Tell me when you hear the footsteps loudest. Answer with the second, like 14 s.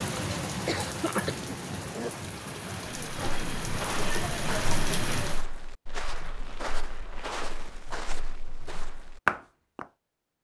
9 s.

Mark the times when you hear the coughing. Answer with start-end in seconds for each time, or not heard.
0.7-2.1.